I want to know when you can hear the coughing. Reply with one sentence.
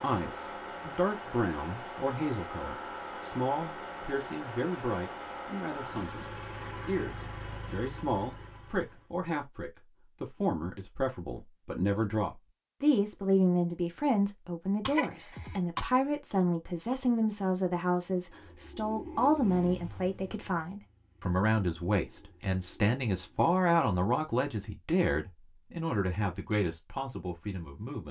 The coughing can be heard from 14.8 to 15.8 s.